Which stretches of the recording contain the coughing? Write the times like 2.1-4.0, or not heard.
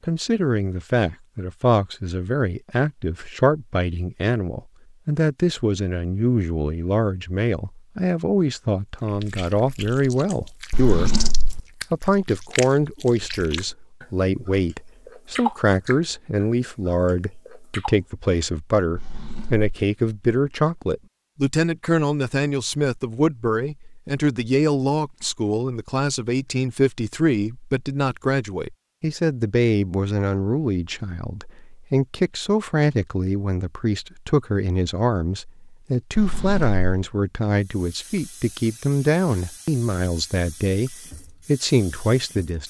not heard.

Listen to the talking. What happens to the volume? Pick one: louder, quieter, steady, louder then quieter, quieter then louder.
steady.